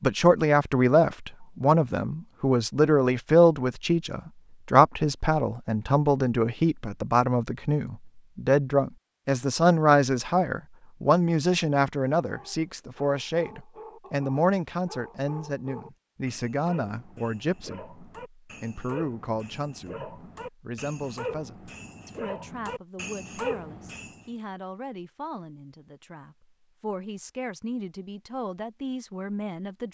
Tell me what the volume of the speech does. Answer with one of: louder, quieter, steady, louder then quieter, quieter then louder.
quieter.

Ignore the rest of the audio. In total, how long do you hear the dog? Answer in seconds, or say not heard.
12 s.